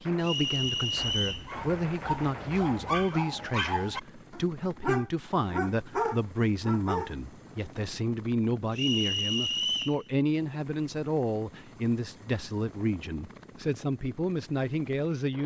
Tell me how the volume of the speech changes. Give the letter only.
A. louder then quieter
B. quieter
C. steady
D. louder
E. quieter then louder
C.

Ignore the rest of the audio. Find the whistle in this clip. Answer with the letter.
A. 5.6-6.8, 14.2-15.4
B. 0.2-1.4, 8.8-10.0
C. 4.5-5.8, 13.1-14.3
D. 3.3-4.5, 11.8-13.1
B.